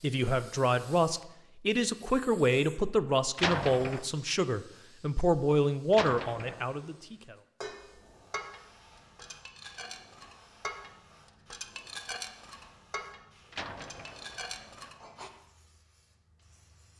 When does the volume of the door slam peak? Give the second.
4 s.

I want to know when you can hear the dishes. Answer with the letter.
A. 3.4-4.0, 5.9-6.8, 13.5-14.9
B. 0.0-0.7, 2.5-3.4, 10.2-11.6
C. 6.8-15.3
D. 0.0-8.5
C.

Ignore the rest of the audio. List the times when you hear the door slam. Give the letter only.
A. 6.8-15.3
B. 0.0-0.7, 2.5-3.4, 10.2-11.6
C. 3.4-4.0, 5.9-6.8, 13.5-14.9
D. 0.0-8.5
C.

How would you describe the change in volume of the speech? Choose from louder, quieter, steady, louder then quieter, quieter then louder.
steady.